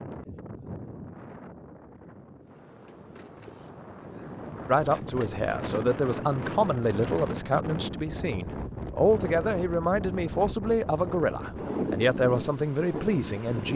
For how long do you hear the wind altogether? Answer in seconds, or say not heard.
14 s.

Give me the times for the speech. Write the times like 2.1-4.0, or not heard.
4.7-13.7.